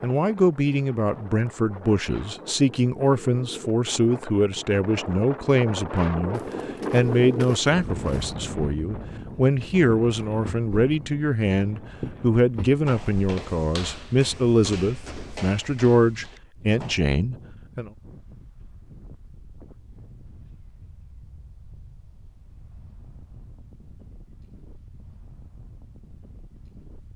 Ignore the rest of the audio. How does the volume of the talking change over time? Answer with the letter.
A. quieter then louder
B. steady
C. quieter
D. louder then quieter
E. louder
B.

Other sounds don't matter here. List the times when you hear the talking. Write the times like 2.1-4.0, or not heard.
0.0-17.9.